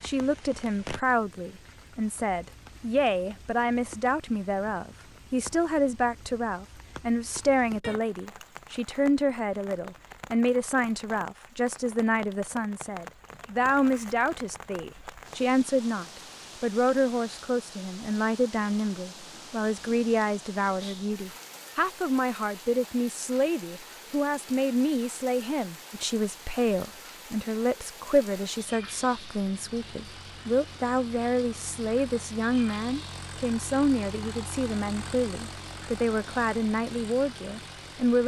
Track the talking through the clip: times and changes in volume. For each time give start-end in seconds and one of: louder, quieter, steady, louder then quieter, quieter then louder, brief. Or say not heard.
0.0-38.2 steady.